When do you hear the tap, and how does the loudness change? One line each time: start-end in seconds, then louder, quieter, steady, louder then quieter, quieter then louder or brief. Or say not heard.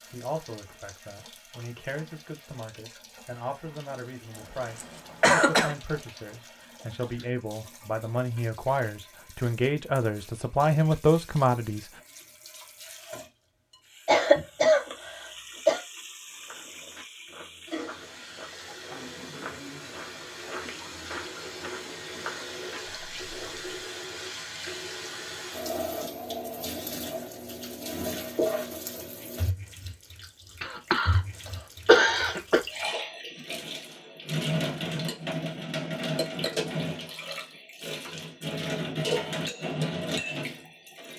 0.0-41.1 louder.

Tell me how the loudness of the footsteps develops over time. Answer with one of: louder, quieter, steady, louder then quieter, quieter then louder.
louder.